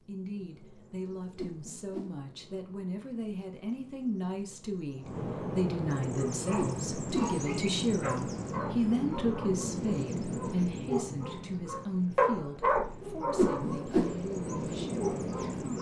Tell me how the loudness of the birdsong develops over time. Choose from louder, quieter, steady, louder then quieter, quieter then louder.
louder.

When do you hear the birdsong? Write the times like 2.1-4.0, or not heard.
0.0-15.7.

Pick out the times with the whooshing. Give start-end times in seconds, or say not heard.
1.4-2.1, 6.5-7.3, 13.3-14.2.